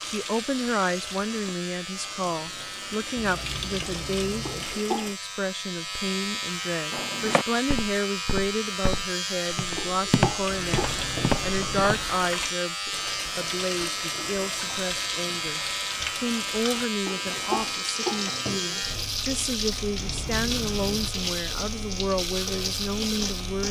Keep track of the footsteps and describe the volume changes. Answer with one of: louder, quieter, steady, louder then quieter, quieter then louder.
quieter then louder.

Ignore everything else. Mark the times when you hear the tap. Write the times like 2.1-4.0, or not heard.
0.0-5.2, 10.4-23.6.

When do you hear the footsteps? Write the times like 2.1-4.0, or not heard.
6.9-12.1.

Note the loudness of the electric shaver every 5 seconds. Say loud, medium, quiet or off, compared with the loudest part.
medium, loud, loud, loud, loud.